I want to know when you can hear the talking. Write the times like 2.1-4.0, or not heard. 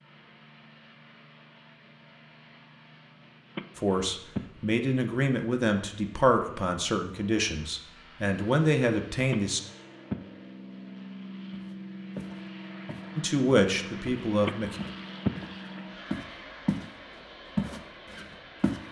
3.8-9.6, 13.2-14.8.